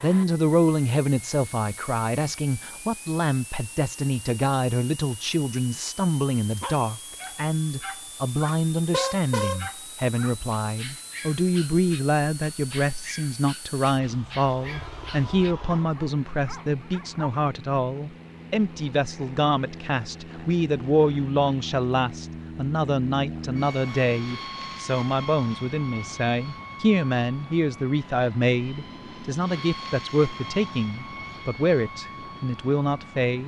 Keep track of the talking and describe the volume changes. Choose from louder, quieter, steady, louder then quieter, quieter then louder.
steady.